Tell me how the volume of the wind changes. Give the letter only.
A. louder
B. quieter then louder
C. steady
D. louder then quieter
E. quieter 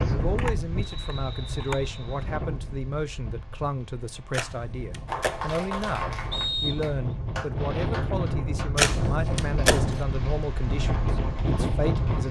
B.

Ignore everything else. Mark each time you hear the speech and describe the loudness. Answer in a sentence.
You can hear the speech from 0.0 to 12.2 s, at a steady volume.